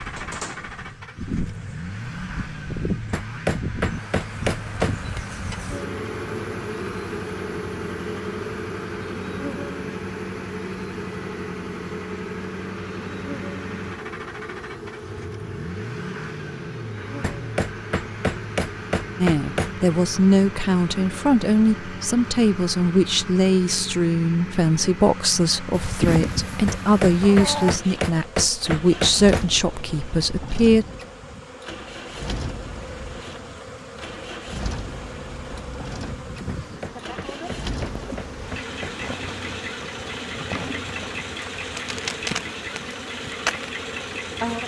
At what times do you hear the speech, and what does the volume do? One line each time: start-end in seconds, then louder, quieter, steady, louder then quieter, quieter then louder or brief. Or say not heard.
19.2-30.9 steady.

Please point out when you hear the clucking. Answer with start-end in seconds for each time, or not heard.
25.7-27.8.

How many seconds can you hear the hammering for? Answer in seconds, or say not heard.
10 s.